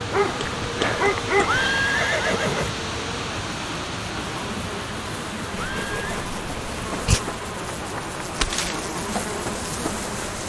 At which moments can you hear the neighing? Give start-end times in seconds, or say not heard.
1.4-2.8, 5.5-6.2.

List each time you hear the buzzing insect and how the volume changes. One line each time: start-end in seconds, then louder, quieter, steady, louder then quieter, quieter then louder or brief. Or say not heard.
0.0-10.4 louder.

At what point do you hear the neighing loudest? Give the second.
2 s.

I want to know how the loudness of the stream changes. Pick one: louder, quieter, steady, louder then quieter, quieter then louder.
quieter.